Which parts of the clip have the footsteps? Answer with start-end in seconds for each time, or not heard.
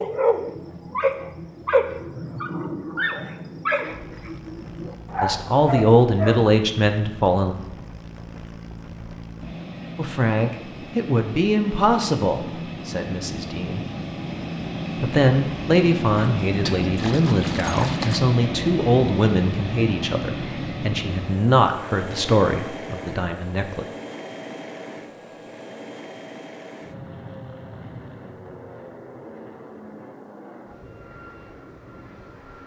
not heard.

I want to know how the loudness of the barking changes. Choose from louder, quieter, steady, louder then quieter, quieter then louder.
quieter then louder.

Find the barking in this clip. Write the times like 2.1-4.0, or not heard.
0.0-6.4.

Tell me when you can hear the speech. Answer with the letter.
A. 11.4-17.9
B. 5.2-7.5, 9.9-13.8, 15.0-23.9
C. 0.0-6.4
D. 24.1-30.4
B.